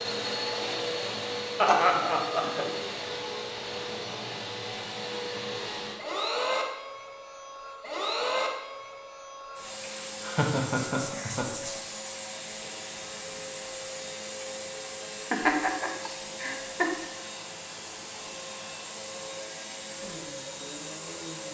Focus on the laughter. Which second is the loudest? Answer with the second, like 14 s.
2 s.